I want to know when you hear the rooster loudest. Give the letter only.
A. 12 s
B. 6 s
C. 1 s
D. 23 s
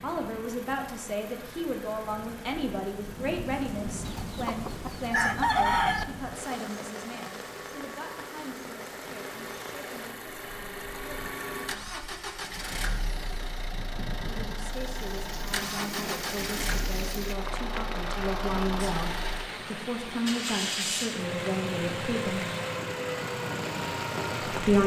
B.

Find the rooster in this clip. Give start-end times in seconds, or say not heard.
4.0-6.0.